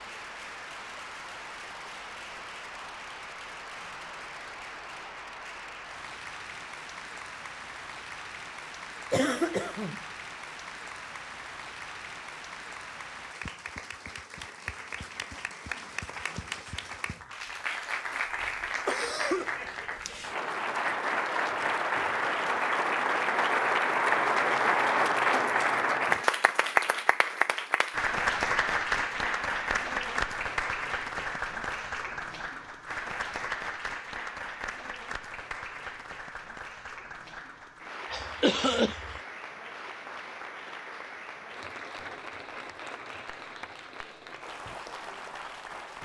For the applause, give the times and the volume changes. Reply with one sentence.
The applause can be heard from 0.0 to 46.0 s, getting louder then quieter.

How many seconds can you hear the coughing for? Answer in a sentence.
You can hear the coughing for 3 seconds altogether.